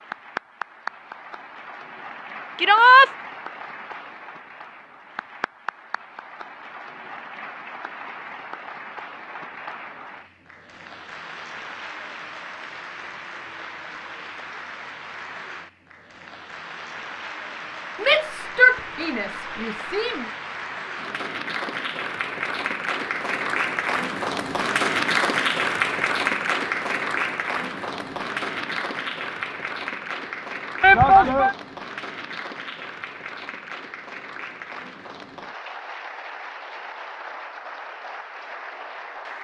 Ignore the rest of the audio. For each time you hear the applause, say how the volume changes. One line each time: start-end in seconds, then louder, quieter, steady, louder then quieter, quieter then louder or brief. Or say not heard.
0.0-39.3 louder then quieter.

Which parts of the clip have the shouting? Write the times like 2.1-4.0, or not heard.
2.5-3.1, 18.0-20.2, 30.8-31.6.